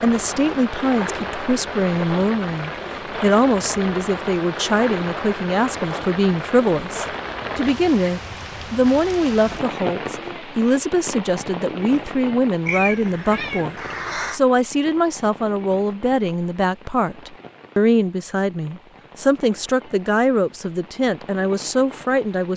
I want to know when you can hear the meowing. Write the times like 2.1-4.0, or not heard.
12.7-14.4.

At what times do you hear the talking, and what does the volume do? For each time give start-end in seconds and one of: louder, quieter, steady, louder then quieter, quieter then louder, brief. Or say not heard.
0.0-22.5 steady.